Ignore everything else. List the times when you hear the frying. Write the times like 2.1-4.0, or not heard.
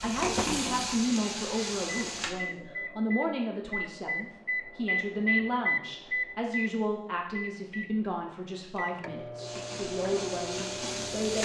0.0-2.4, 9.4-11.4.